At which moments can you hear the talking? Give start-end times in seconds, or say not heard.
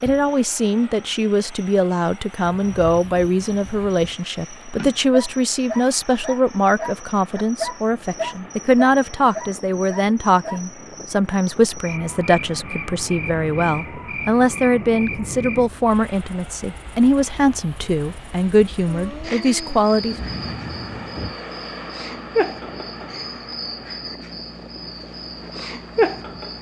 0.0-20.1.